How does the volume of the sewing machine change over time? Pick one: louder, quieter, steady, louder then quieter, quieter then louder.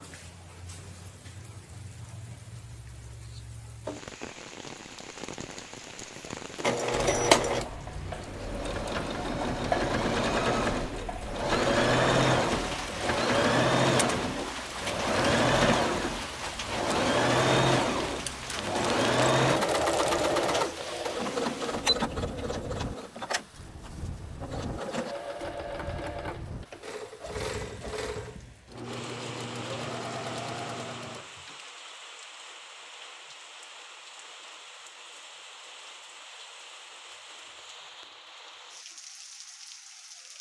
quieter.